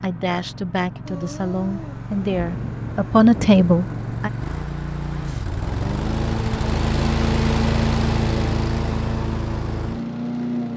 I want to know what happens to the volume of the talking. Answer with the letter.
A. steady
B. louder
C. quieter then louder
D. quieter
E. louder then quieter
B.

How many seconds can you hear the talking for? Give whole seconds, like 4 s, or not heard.
4 s.